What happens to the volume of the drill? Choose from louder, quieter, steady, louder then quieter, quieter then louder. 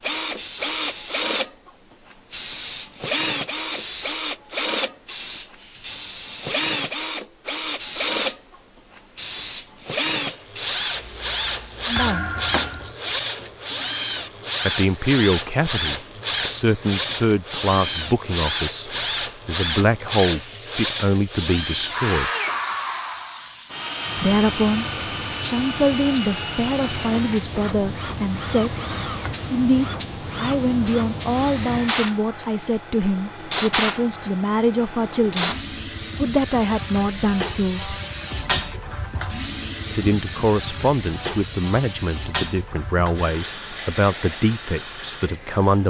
quieter.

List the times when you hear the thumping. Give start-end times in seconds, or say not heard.
11.9-12.9.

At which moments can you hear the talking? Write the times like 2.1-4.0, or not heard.
11.8-12.3, 14.6-22.3, 24.1-28.8, 29.5-35.5, 36.1-38.0, 39.9-45.8.